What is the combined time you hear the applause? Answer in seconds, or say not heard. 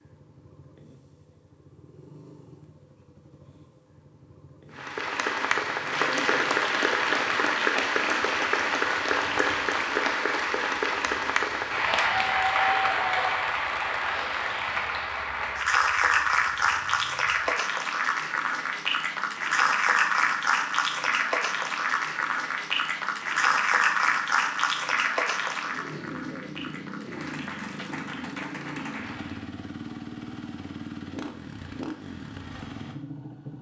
25 s.